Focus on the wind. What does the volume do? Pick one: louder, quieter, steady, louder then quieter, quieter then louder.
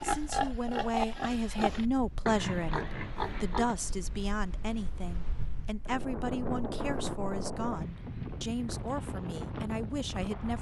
louder.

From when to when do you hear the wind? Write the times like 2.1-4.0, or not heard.
0.1-10.5.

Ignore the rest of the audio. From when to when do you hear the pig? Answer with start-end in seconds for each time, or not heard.
0.0-3.8.